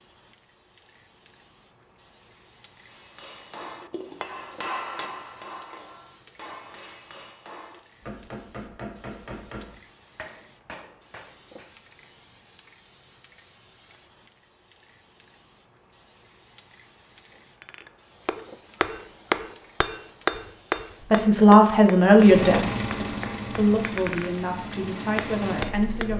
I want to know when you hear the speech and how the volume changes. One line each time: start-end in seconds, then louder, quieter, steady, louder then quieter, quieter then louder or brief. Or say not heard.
21.1-26.1 quieter.